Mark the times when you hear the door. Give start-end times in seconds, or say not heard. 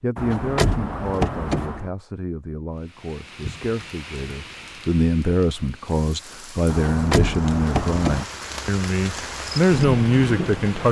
0.1-1.9, 6.7-8.2.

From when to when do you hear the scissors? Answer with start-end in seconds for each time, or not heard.
not heard.